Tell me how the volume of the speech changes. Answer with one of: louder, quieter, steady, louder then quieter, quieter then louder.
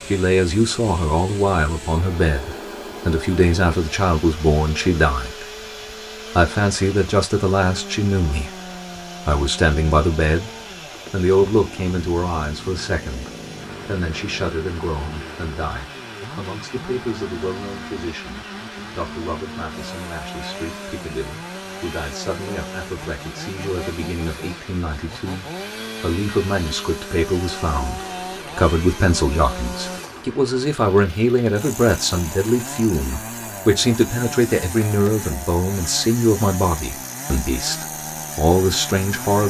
quieter then louder.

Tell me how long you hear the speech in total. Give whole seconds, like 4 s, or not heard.
38 s.